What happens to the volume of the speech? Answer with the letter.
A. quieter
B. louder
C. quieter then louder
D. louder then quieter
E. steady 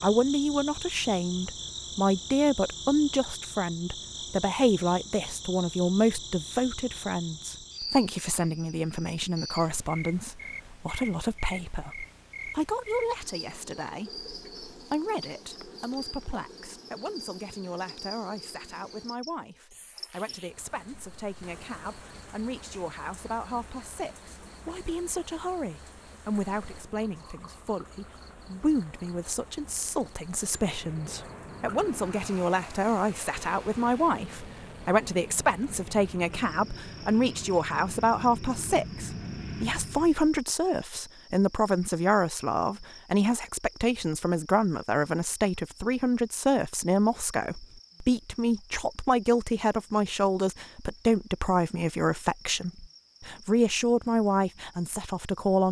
C.